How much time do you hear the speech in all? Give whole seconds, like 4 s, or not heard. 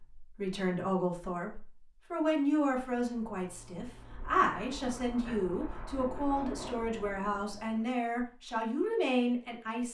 10 s.